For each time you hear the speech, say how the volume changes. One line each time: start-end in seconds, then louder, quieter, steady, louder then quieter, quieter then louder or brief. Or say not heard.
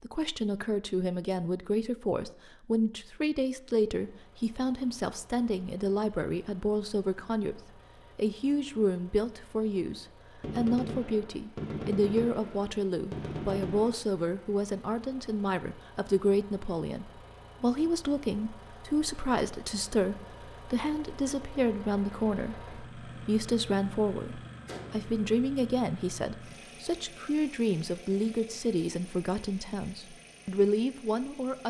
0.0-31.6 steady.